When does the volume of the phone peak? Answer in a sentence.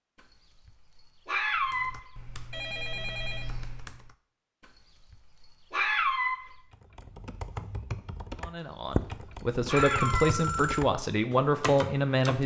The volume of the phone peaks at 10 seconds.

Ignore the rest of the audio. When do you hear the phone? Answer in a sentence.
The phone can be heard from 2.5 to 3.5 s and from 9.8 to 10.8 s.